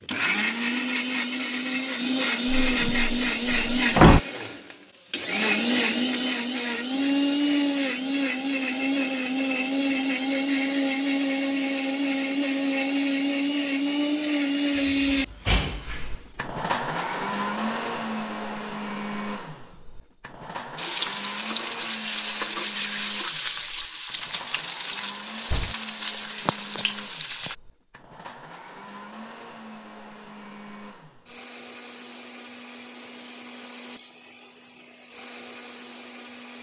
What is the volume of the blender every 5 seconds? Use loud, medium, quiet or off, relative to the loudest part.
loud, loud, loud, medium, quiet, quiet, quiet, quiet.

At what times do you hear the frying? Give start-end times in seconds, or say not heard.
20.8-27.6.